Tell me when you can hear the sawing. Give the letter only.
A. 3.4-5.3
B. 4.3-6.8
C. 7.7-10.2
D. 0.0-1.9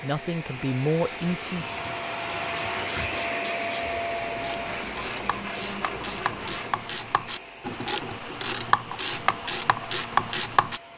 B.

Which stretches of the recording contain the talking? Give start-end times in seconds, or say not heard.
0.0-1.9.